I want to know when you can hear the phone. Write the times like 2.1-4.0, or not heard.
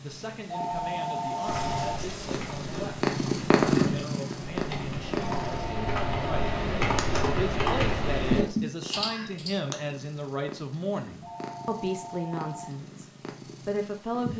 0.5-2.0, 5.3-6.7, 11.2-12.7.